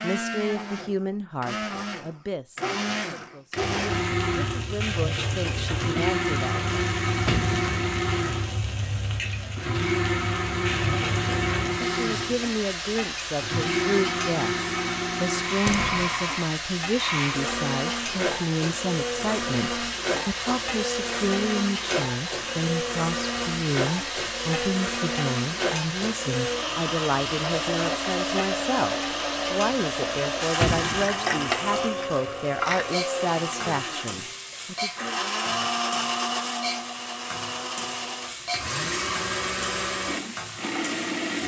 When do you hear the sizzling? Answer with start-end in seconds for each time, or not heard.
3.5-41.4.